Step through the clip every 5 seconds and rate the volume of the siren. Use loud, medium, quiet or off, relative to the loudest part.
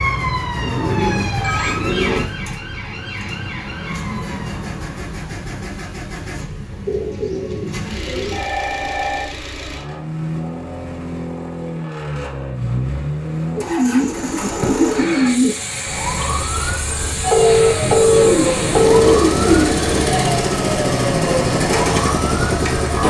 loud, off, off, loud, loud.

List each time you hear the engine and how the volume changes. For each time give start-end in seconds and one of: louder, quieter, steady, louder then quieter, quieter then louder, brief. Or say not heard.
0.0-23.0 louder.